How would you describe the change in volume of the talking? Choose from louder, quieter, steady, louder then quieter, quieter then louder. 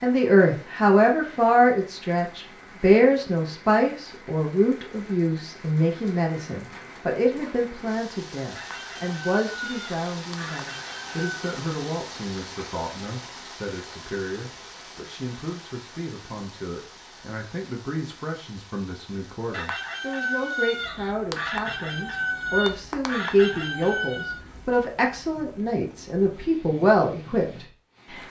quieter then louder.